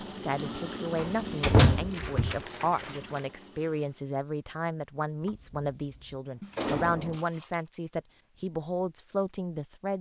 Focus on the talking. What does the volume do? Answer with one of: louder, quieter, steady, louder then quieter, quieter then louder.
steady.